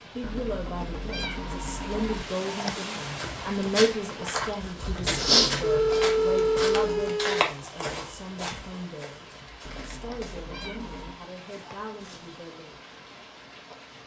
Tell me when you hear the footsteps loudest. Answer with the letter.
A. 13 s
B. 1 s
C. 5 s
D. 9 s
C.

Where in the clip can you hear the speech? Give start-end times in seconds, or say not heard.
0.0-12.8.